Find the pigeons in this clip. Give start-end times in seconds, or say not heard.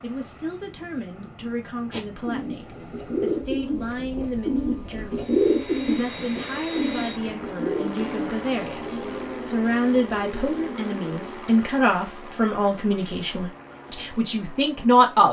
1.9-11.4.